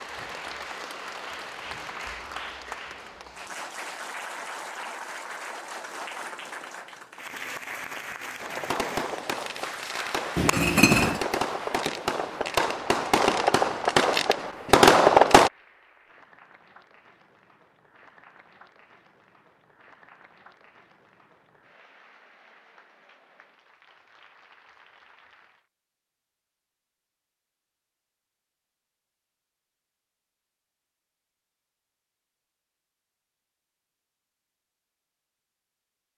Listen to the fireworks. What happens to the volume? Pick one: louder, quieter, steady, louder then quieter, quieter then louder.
louder.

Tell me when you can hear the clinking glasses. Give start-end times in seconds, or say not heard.
10.3-11.2.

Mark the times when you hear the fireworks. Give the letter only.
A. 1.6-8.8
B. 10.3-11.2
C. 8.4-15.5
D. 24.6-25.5
C.